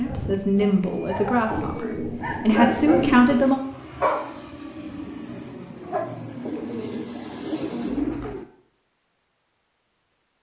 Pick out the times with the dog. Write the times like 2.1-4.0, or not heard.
0.0-3.0, 4.0-4.5, 5.6-6.0.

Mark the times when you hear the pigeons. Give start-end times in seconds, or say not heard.
1.5-3.5, 6.5-8.4.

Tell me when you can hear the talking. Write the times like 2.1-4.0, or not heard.
0.0-3.5.